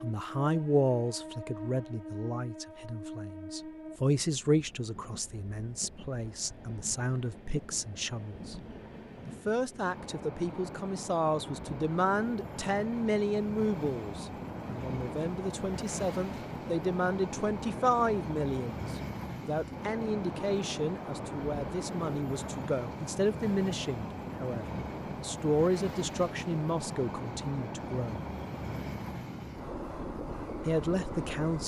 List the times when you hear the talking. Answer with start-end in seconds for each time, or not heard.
0.0-8.6, 9.2-28.2, 30.6-31.6.